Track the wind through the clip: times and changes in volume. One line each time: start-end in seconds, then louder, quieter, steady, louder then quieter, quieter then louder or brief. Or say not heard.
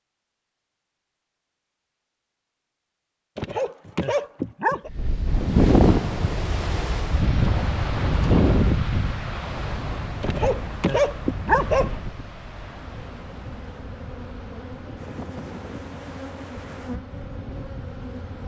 4.8-18.4 quieter.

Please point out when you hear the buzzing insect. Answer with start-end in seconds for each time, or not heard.
12.7-18.4.